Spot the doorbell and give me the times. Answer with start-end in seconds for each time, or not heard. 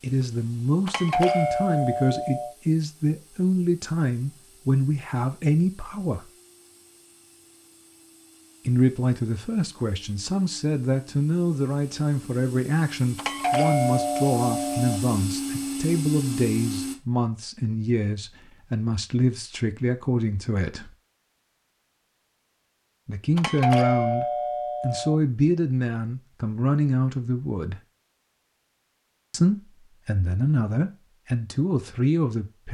0.8-2.5, 13.2-15.0, 23.4-25.1.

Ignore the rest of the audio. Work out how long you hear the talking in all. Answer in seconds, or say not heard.
27 s.